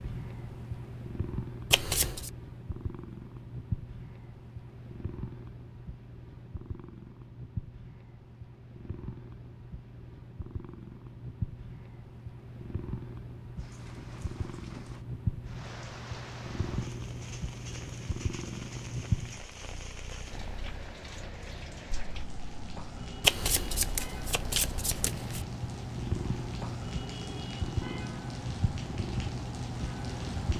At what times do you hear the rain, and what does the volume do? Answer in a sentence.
The rain can be heard from 13.6 to 30.5 s, getting louder.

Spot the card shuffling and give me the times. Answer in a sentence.
You can hear the card shuffling from 1.7 to 2.3 s and from 23.2 to 25.4 s.